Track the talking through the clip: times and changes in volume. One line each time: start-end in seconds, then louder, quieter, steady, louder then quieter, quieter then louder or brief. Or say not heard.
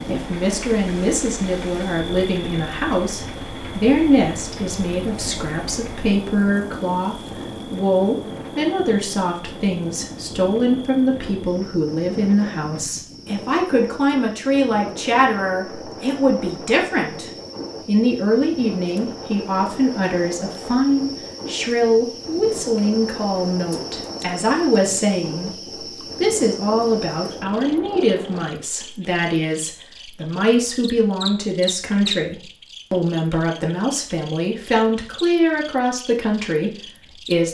0.0-37.5 steady.